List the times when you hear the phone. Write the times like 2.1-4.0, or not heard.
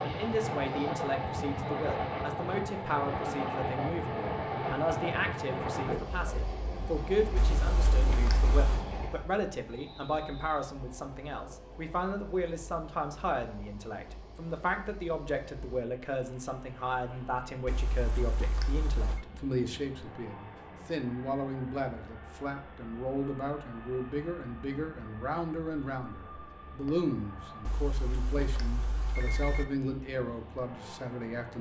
7.3-8.8, 17.6-19.2, 27.6-29.6.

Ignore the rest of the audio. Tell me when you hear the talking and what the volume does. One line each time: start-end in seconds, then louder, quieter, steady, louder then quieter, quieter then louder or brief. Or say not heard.
0.0-31.5 steady.